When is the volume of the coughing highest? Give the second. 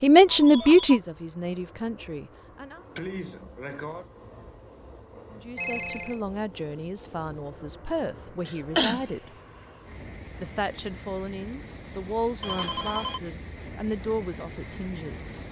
9 s.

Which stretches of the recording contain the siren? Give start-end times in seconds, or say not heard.
not heard.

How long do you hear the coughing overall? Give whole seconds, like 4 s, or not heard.
2 s.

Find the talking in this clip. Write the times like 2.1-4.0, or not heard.
0.0-2.8, 5.3-9.3, 10.4-15.4.